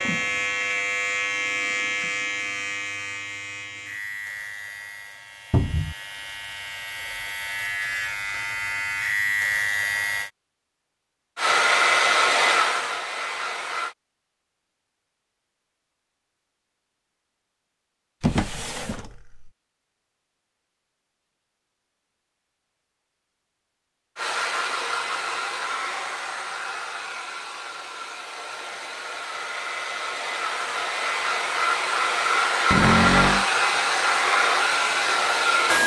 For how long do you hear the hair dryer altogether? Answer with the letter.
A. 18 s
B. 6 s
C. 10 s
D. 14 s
D.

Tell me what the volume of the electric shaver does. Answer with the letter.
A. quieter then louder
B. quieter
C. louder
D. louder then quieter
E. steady
A.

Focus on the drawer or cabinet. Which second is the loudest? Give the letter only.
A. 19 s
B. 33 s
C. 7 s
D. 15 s
B.